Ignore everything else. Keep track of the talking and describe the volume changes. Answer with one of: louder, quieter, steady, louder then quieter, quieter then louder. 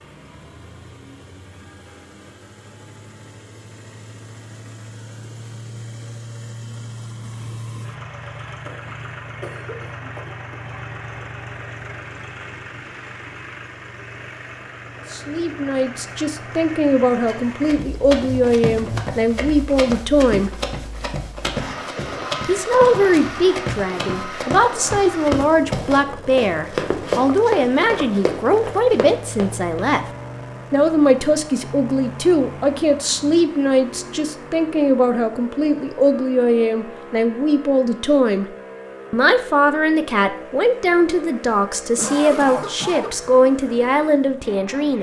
steady.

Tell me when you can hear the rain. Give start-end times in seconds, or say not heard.
not heard.